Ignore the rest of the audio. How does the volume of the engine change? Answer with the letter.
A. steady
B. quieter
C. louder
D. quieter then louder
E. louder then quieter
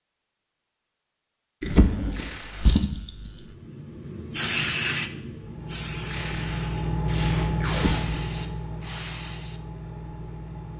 E.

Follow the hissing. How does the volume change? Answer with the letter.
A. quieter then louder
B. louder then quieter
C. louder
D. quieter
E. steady
D.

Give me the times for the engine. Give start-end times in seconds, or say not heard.
5.3-10.7.